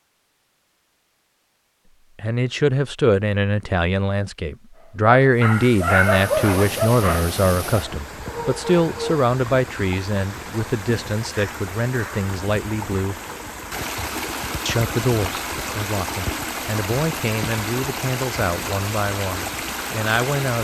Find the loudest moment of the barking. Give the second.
6 s.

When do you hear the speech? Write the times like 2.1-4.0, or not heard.
2.1-13.2, 14.7-20.5.